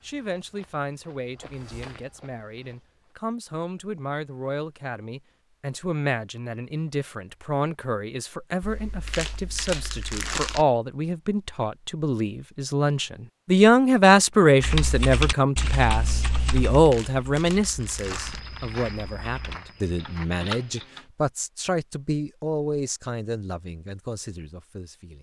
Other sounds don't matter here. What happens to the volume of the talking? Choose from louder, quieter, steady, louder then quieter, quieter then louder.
louder then quieter.